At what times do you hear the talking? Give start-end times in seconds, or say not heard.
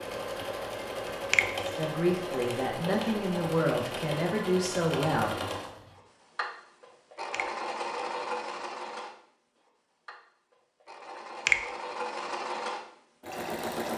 1.6-5.3.